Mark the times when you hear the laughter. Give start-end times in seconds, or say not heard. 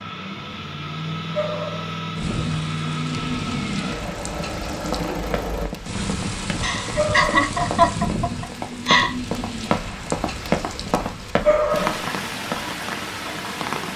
6.6-9.2.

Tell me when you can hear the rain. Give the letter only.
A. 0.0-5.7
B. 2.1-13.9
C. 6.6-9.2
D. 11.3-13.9
B.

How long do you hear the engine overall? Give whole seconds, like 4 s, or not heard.
6 s.